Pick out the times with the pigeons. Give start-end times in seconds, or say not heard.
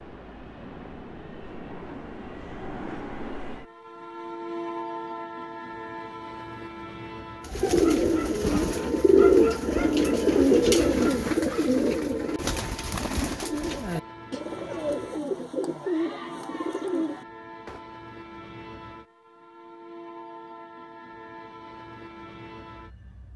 7.5-17.8.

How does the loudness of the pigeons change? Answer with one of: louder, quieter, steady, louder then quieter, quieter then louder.
quieter.